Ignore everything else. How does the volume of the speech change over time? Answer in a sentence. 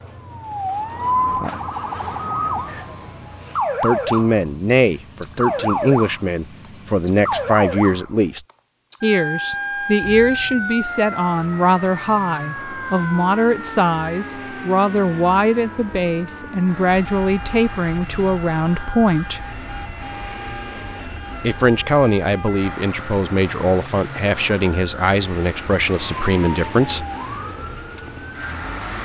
The loudness of the speech stays about the same.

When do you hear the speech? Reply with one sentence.
The speech can be heard from 3.8 to 19.4 s and from 21.4 to 27.1 s.